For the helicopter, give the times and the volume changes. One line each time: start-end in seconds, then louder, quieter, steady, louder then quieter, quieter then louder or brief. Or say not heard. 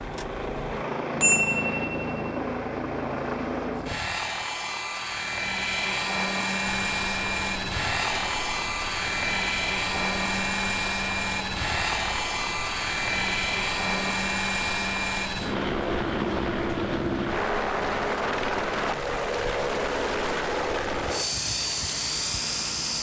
0.0-22.9 steady.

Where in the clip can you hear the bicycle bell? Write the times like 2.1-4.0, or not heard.
0.7-2.3.